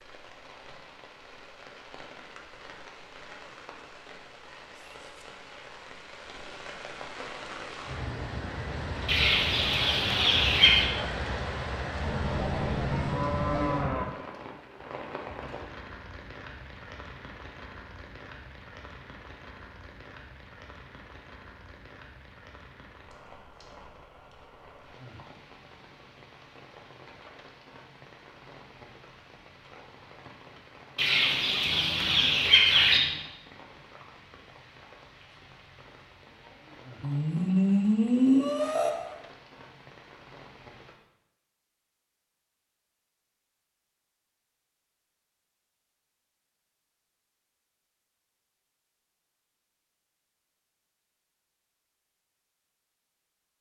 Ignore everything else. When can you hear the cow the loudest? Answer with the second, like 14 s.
38 s.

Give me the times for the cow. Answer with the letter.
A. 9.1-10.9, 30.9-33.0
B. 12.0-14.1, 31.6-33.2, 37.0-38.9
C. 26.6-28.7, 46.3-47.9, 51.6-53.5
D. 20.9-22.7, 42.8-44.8
B.